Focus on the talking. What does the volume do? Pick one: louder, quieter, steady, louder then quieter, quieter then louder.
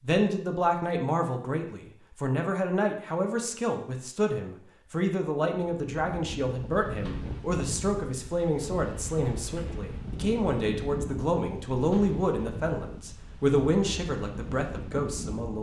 steady.